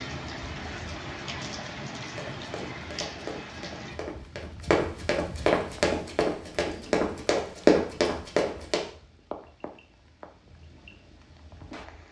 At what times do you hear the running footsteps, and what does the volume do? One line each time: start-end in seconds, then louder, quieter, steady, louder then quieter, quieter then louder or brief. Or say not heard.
2.0-8.8 louder.